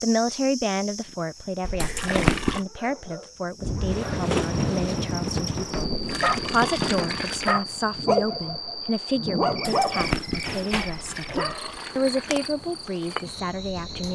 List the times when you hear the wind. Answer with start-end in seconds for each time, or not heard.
3.6-14.0.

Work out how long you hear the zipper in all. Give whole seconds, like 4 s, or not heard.
2 s.